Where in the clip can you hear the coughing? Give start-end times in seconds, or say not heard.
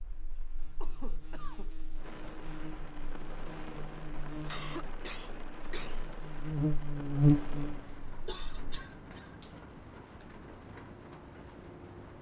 0.3-1.7, 4.4-6.0, 8.2-9.3.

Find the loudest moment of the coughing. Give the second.
5 s.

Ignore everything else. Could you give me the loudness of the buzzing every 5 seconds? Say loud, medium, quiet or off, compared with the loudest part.
quiet, loud, off.